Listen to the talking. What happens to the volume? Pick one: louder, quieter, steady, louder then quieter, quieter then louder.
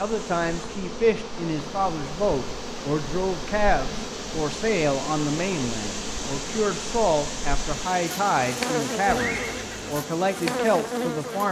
steady.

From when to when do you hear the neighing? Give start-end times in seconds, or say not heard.
9.1-10.0.